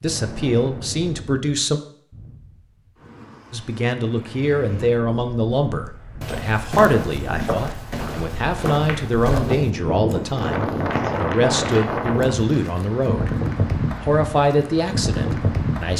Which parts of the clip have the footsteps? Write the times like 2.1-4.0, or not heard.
6.2-12.8.